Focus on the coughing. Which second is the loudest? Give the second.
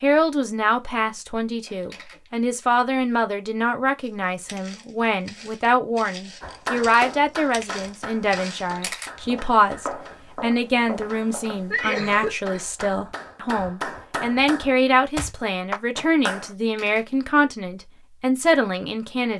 12 s.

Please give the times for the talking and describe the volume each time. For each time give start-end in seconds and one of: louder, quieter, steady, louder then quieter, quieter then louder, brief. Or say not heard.
0.0-19.3 steady.